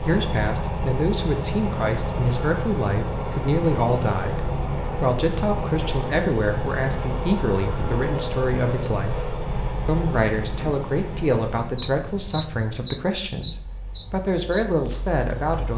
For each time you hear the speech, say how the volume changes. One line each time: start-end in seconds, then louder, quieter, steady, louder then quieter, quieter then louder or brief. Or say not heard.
0.1-15.7 steady.